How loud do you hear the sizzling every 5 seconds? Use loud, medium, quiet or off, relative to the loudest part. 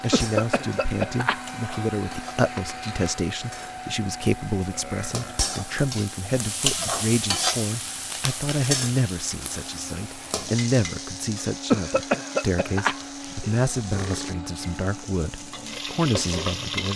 quiet, loud, medium, loud.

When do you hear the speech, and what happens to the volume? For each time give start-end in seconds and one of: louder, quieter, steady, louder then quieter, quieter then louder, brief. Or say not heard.
0.0-16.9 steady.